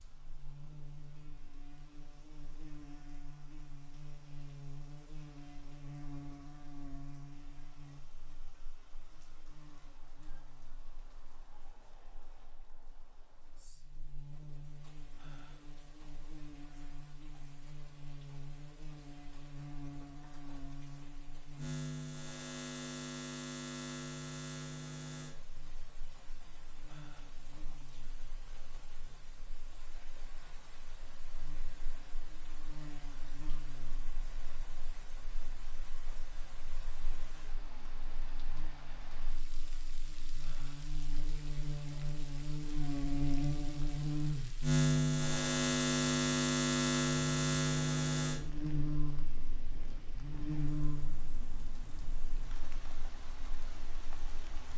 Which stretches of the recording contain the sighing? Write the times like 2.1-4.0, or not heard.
15.2-15.7, 26.9-27.4, 40.4-40.9.